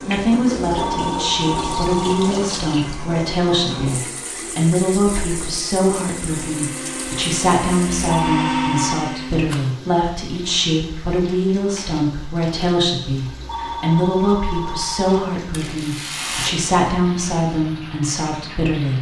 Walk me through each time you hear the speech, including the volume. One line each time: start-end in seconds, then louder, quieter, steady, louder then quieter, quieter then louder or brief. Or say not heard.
0.0-18.9 steady.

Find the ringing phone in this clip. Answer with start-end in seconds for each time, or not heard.
0.7-2.4, 8.1-9.1, 13.3-15.2.